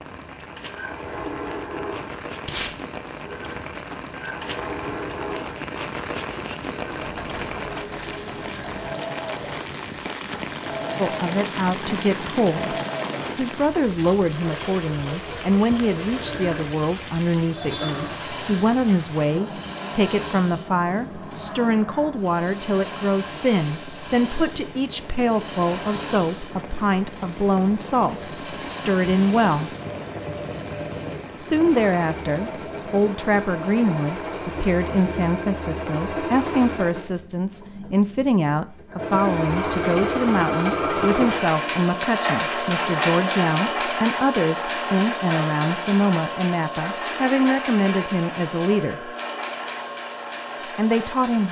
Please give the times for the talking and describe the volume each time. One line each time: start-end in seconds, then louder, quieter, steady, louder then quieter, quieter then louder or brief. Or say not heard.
10.9-12.8 brief
13.3-29.7 steady
31.4-49.1 steady
50.8-51.4 brief.